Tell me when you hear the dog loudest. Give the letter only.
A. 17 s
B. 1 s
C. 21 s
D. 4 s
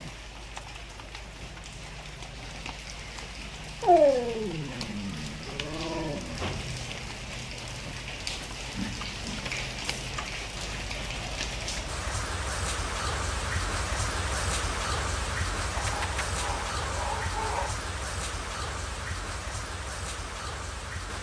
D.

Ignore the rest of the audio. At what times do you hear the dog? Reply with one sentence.
You can hear the dog from 3.8 to 6.4 s and from 15.8 to 17.8 s.